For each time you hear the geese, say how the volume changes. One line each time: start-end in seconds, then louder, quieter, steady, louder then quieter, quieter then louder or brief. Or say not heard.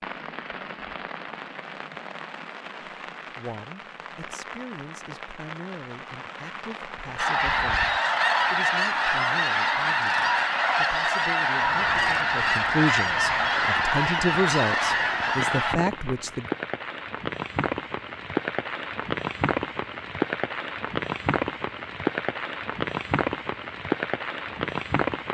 7.2-15.8 steady.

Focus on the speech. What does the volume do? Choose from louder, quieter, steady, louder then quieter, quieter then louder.
louder.